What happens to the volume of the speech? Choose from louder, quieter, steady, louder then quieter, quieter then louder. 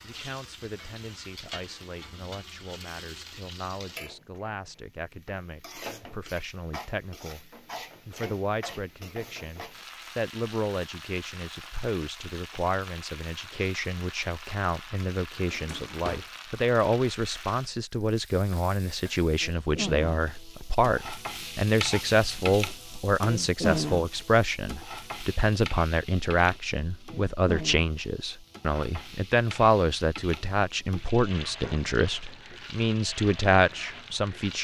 louder.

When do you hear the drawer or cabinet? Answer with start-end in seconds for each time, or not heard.
15.4-16.3.